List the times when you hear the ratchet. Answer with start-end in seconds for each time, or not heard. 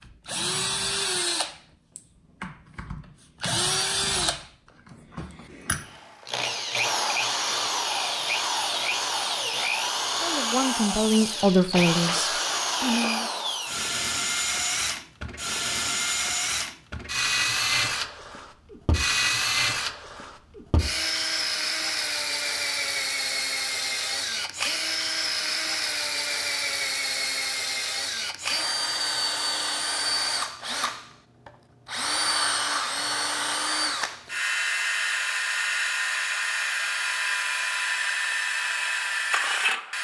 not heard.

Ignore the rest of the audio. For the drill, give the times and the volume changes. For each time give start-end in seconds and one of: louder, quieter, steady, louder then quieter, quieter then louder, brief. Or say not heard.
0.1-39.9 steady.